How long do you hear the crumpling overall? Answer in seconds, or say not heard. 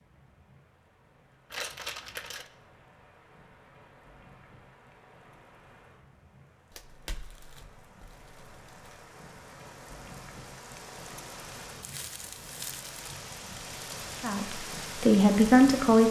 5 s.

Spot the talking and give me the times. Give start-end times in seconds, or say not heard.
14.2-16.0.